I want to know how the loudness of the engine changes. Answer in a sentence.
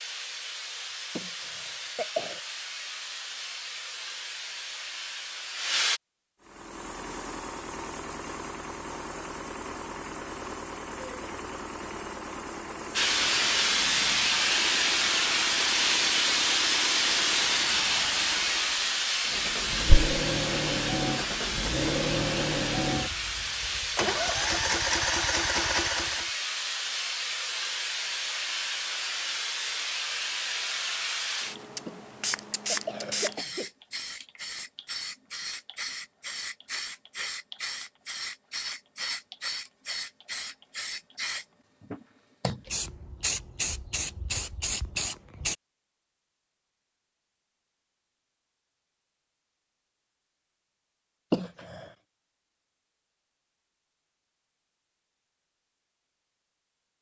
The loudness of the engine goes up.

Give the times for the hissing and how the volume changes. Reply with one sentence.
You can hear the hissing from 0.0 to 6.0 s, at a steady volume; and from 12.9 to 45.5 s, getting quieter.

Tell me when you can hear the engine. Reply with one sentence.
The engine can be heard from 6.4 to 26.4 s.